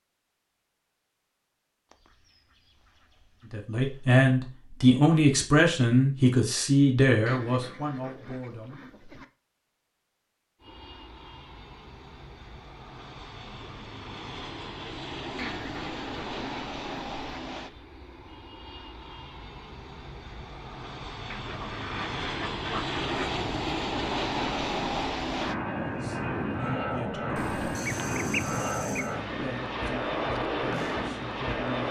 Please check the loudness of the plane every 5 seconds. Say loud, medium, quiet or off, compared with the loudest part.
off, off, quiet, medium, loud, loud, loud.